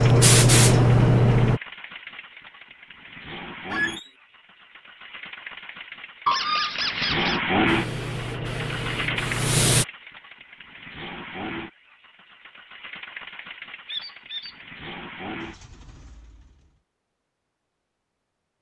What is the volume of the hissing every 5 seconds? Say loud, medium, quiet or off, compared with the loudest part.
loud, medium, off, off.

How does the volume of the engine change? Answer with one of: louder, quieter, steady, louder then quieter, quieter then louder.
louder then quieter.